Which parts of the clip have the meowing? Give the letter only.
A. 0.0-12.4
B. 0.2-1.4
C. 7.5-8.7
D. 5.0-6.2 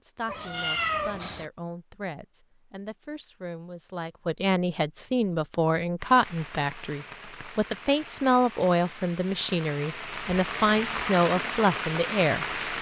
B.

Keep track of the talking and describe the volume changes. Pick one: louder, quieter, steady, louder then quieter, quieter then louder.
louder.